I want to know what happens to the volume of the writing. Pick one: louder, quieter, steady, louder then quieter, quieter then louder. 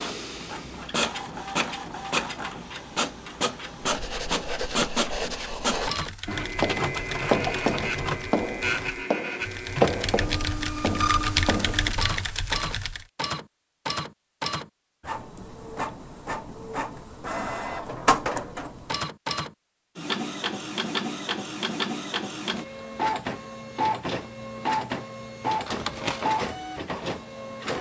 louder then quieter.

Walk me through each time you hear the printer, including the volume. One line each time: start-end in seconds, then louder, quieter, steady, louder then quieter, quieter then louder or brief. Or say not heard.
0.0-27.7 steady.